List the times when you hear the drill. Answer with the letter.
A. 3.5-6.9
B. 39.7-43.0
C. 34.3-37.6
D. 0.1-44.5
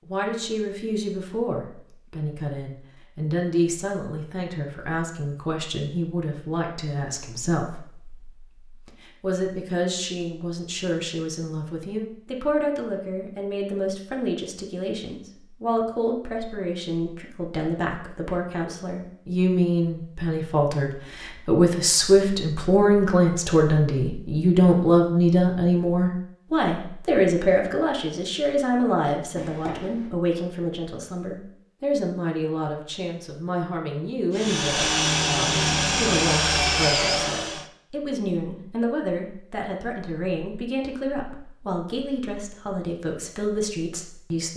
C.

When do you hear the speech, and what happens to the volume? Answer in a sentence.
You can hear the speech from 0.1 to 44.5 s, getting louder then quieter.